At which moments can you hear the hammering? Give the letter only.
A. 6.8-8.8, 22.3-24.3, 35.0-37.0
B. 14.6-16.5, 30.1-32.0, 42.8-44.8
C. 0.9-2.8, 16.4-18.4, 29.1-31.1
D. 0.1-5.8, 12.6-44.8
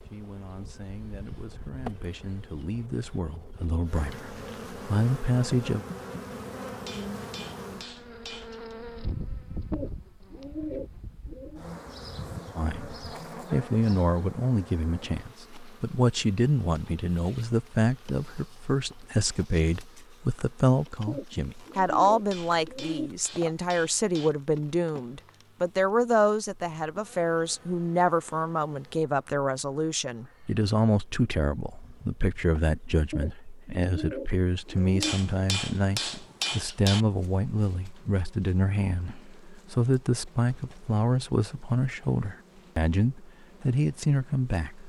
A.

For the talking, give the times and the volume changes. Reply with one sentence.
You can hear the talking from 0.1 to 5.8 s, getting louder; and from 12.6 to 44.8 s, at a steady volume.